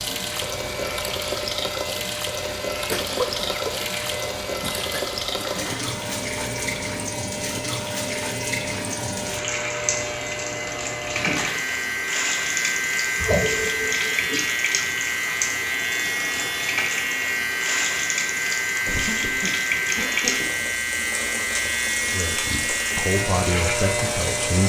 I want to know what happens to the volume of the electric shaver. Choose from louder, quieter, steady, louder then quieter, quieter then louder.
louder.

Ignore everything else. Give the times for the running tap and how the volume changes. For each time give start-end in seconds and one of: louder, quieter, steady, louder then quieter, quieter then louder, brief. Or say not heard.
0.0-24.6 steady.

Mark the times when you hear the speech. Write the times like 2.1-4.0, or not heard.
22.1-24.6.